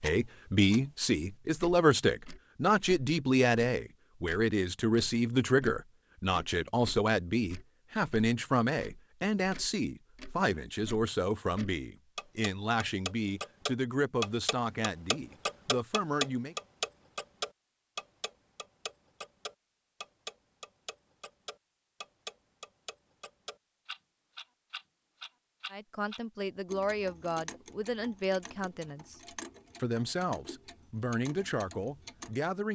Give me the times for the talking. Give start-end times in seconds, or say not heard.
0.0-16.6, 25.7-29.2, 29.8-32.7.